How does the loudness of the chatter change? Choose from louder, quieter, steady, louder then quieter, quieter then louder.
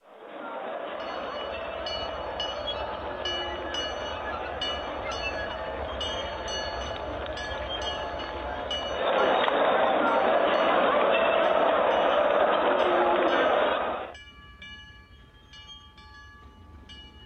louder.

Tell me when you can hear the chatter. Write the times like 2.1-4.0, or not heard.
0.0-14.2.